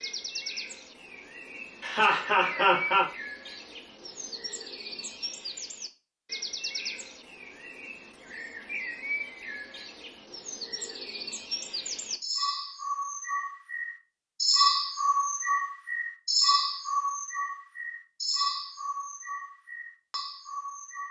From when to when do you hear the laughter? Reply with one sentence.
The laughter can be heard from 1.8 to 3.0 s.